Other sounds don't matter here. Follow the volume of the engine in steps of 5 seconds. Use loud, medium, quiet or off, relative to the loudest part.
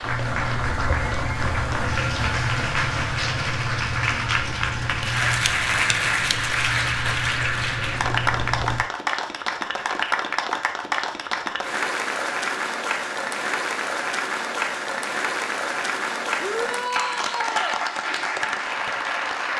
loud, loud, off, off.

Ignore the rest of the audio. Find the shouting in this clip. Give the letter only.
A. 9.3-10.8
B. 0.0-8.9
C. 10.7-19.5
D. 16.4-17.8
D.